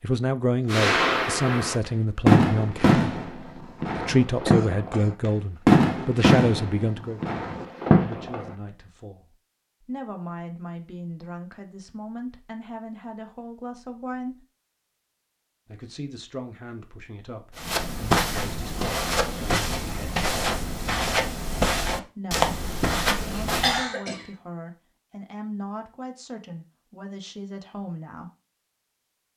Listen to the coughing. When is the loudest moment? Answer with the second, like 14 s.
24 s.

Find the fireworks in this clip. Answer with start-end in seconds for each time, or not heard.
0.7-8.5.